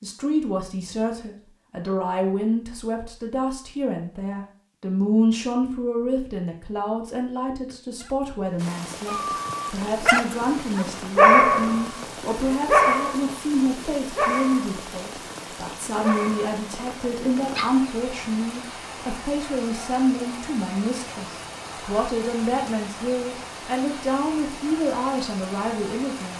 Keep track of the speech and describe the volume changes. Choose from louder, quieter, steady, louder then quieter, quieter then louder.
steady.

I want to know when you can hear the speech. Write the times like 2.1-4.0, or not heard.
0.0-26.3.